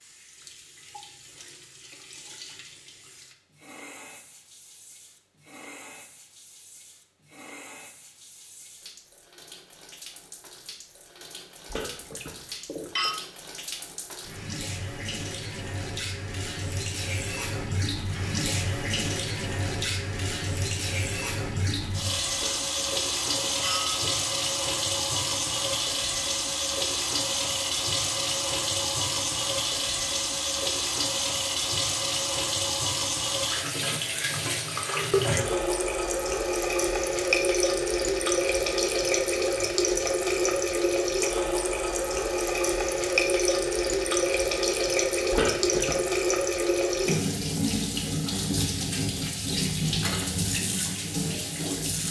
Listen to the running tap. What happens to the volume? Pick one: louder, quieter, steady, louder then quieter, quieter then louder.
louder.